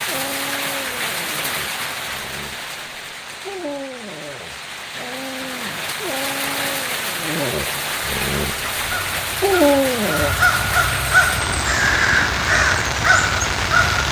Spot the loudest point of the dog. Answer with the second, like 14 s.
10 s.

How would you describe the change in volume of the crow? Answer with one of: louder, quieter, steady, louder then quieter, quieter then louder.
louder.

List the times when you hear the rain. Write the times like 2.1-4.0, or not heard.
0.0-14.0.